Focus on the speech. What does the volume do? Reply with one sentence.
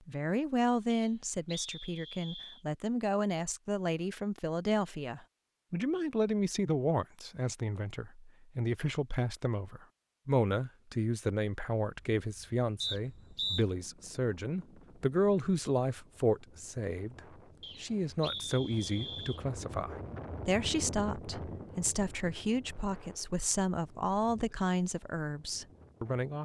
The volume of the speech stays about the same.